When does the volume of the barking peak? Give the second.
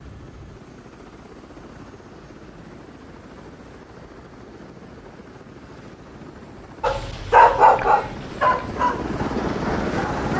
8 s.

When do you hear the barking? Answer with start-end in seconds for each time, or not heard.
6.8-10.3.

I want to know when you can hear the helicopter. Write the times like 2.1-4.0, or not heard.
0.0-10.3.